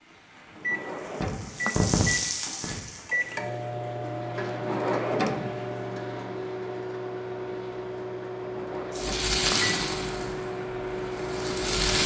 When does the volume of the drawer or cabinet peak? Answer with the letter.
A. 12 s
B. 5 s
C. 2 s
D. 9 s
B.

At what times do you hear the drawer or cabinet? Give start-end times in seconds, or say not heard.
0.6-1.9, 4.5-5.6, 8.4-9.7.